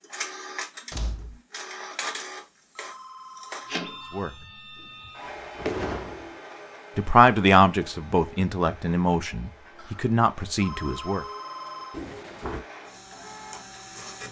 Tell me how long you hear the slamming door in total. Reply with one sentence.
The slamming door can be heard for 3 seconds in total.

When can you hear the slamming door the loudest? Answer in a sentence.
The loudest moment of the slamming door is at 6 seconds.